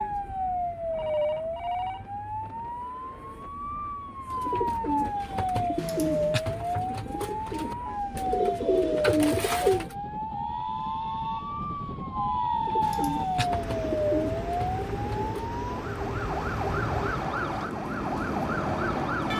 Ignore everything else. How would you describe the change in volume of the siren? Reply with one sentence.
The loudness of the siren stays about the same.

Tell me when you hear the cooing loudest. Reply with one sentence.
The loudest moment of the cooing is at 9 seconds.